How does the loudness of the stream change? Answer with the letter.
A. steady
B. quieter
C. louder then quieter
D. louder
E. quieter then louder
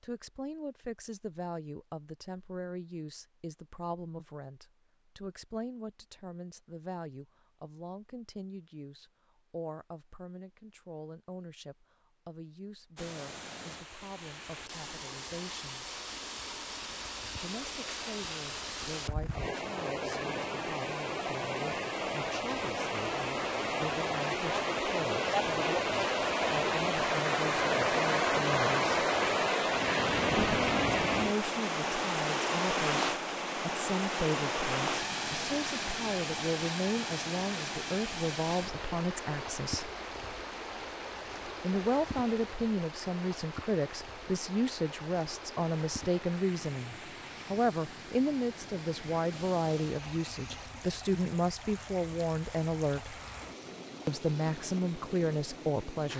C.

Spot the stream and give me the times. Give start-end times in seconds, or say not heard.
12.9-56.1.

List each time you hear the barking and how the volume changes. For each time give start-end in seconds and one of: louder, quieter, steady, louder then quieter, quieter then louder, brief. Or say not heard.
not heard.